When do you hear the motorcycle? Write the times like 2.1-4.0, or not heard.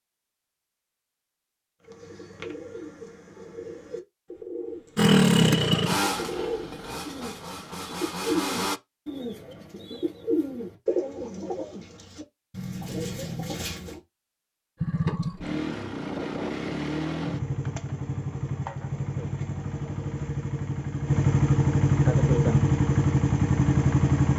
5.0-8.8, 14.8-24.3.